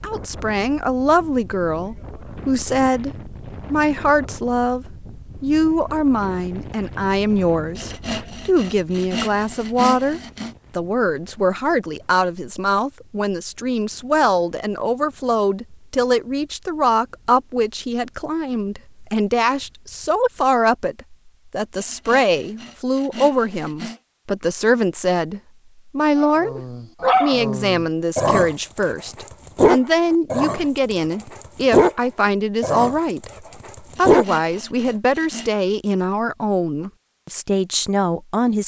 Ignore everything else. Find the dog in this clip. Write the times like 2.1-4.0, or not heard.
26.1-31.9, 32.6-34.2.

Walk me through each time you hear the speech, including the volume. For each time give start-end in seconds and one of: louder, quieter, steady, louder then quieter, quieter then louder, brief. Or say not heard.
0.0-38.6 steady.